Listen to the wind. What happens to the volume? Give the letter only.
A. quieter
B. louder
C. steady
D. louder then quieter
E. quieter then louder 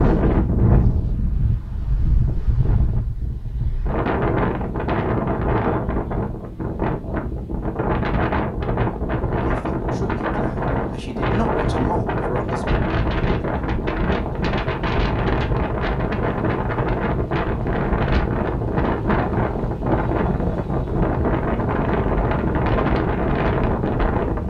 C.